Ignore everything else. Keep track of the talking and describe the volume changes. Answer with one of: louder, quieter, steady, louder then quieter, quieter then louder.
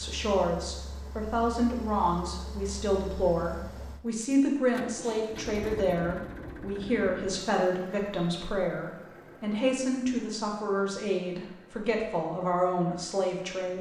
steady.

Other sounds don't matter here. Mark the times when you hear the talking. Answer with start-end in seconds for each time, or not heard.
0.0-13.7.